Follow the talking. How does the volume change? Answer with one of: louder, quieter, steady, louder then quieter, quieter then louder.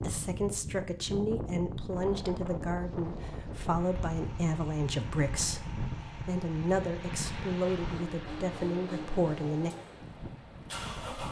steady.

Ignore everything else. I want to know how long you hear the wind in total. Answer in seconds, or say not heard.
11 s.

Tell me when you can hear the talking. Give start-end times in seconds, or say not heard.
0.0-9.7.